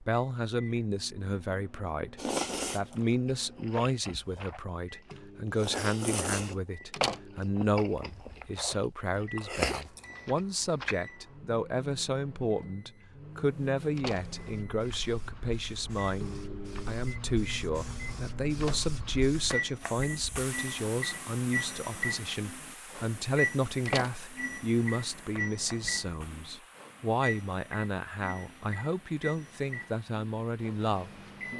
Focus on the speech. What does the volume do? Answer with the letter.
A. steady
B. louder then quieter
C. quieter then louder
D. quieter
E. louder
A.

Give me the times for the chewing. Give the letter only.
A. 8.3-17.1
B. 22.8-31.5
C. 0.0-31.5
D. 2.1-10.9
D.